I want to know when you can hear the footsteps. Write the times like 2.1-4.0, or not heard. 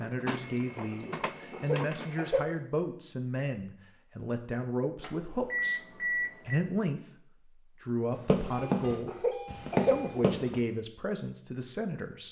8.2-10.6.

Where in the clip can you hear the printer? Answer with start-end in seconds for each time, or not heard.
0.0-2.5.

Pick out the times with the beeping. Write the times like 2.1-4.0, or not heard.
0.3-2.2, 5.0-6.5, 8.4-10.5.